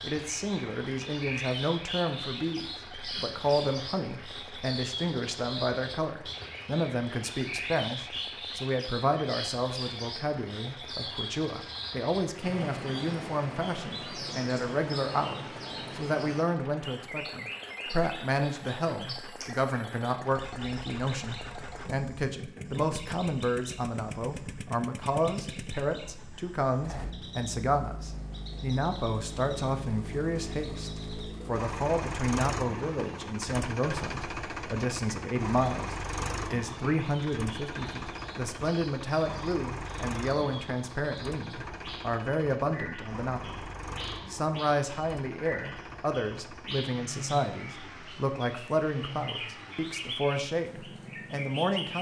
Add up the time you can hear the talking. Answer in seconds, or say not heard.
51 s.